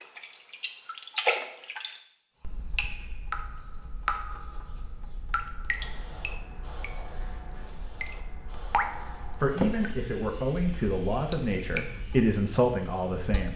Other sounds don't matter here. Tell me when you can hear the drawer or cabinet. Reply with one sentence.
You can hear the drawer or cabinet from 9.3 to 10.1 s.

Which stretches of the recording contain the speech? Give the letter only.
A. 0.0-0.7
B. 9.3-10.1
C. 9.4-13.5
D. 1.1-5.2
C.